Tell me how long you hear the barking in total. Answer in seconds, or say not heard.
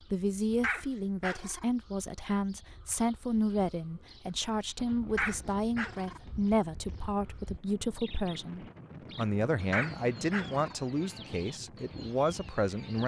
3 s.